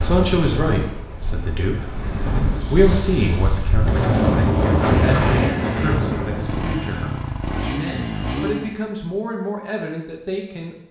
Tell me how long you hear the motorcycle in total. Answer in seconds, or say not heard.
4 s.